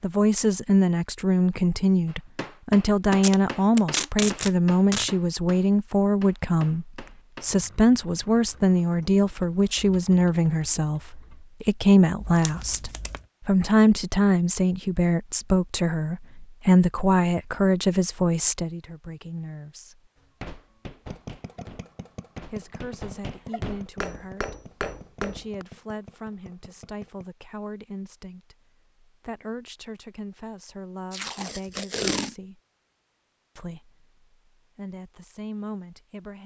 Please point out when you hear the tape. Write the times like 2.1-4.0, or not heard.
3.1-5.1, 12.2-13.2, 31.1-32.4.